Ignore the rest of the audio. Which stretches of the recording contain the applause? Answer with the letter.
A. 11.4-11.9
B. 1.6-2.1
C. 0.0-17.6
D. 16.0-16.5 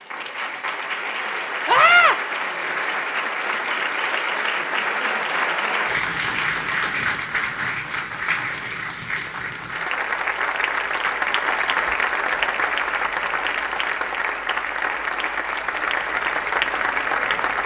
C.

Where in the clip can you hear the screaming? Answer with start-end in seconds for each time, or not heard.
1.6-2.1.